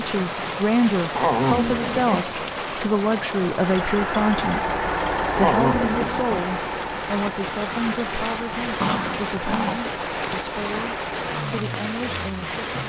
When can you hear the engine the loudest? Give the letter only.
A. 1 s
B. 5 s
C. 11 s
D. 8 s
B.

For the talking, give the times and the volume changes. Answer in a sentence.
You can hear the talking from 0.0 to 12.8 s, getting quieter.